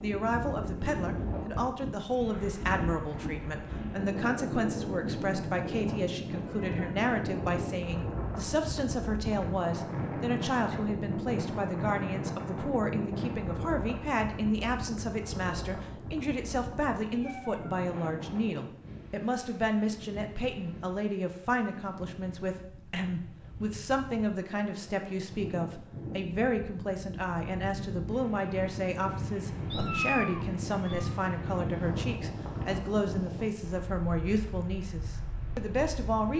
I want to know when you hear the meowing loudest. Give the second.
30 s.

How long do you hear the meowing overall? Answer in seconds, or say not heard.
3 s.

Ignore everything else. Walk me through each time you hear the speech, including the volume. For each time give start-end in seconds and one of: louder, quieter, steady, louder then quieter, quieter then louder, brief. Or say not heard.
0.0-36.3 steady.